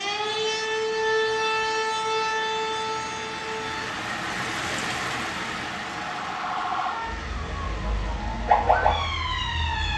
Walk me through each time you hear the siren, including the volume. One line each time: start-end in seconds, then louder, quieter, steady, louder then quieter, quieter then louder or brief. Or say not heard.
0.0-9.9 quieter then louder.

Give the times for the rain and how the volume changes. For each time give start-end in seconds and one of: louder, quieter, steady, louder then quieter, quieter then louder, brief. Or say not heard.
0.0-9.9 louder then quieter.